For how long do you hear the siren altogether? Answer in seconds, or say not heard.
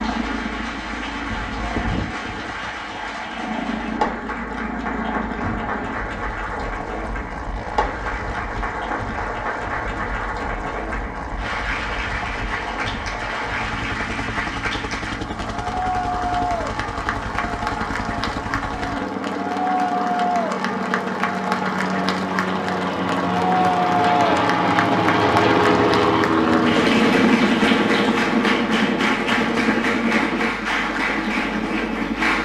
not heard.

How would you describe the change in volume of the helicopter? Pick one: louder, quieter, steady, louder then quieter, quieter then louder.
louder.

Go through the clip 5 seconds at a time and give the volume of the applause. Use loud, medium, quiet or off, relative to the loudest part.
medium, medium, medium, loud, loud, loud, loud.